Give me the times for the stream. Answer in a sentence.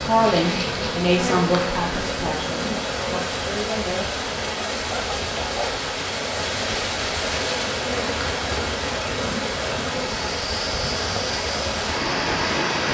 The stream can be heard from 0.0 to 12.9 s.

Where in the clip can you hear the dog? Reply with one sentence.
You can hear the dog from 4.9 to 5.8 s.